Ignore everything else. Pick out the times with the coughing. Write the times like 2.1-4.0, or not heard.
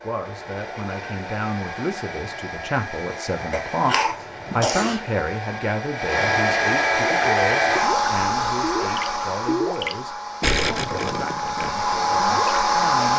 3.5-5.0.